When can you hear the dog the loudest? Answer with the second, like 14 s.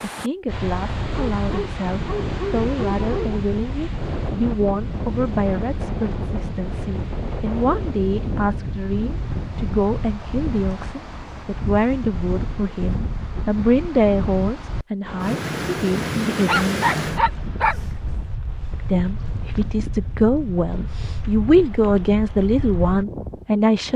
17 s.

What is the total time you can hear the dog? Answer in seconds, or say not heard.
4 s.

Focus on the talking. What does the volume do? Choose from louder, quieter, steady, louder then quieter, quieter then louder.
louder.